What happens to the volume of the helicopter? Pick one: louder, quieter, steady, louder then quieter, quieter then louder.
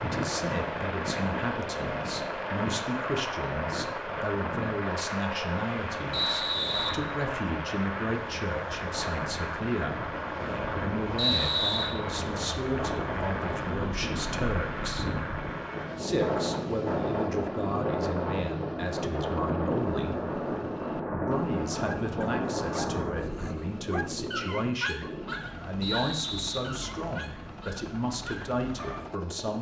quieter.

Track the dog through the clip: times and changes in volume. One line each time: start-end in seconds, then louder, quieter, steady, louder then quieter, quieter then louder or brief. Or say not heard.
21.8-29.1 louder then quieter.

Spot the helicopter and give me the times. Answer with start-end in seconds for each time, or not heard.
0.0-29.5.